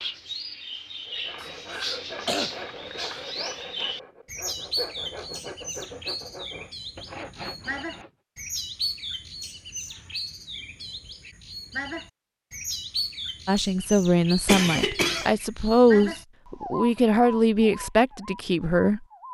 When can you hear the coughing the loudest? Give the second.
15 s.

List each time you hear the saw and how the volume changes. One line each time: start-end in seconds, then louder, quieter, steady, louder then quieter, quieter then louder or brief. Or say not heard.
1.1-8.1 steady.